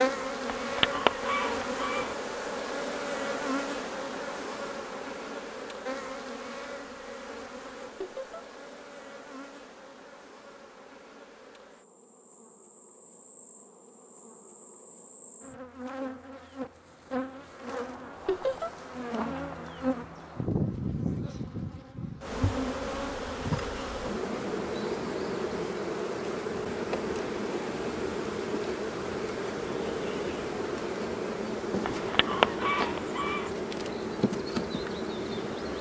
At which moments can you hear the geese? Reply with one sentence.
The geese can be heard from 0.5 to 2.1 s and from 31.9 to 33.5 s.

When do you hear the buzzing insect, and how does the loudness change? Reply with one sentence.
The buzzing insect can be heard from 0.0 to 35.7 s, getting quieter then louder.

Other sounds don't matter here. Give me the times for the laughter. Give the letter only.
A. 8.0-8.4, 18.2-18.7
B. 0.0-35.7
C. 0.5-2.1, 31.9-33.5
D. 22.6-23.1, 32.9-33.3
A.